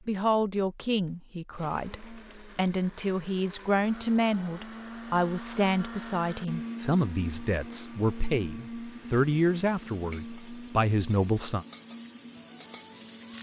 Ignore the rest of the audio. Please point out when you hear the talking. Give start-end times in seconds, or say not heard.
0.1-11.7.